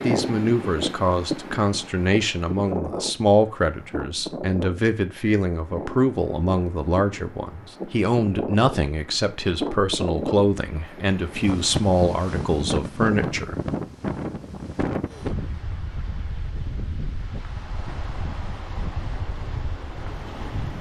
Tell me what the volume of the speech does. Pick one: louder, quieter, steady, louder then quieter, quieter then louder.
steady.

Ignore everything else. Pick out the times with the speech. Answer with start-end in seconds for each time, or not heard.
0.0-13.6.